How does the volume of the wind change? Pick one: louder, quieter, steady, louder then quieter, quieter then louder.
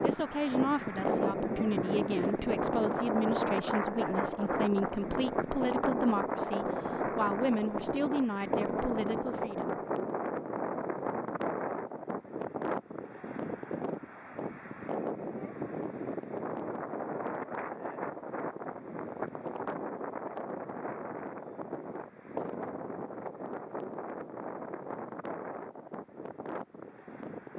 quieter.